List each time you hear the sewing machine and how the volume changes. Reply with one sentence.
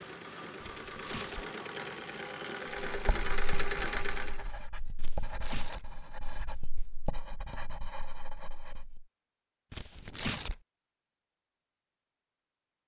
You can hear the sewing machine from 0.0 to 4.5 s, getting louder.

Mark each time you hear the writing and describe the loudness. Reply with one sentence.
You can hear the writing from 2.9 to 9.1 s, at a steady volume.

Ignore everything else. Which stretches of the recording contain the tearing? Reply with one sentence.
The tearing can be heard from 0.8 to 1.5 s, from 5.0 to 5.8 s and from 9.7 to 10.6 s.